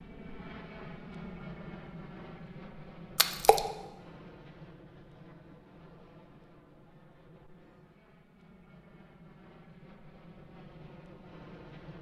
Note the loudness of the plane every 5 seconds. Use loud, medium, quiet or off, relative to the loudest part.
loud, medium, loud.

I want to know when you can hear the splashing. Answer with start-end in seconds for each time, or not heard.
3.1-3.6.